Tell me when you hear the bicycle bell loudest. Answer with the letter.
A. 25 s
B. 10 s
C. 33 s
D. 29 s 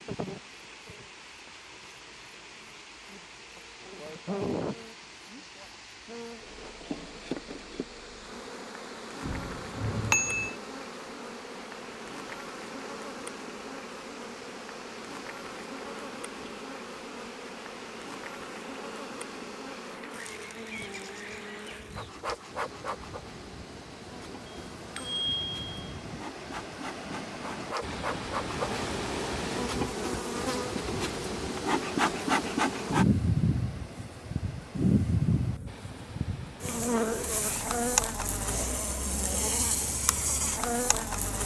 B.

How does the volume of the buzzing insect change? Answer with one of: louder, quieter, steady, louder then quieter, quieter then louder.
louder.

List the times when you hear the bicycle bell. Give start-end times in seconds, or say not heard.
9.2-10.6, 24.4-26.0.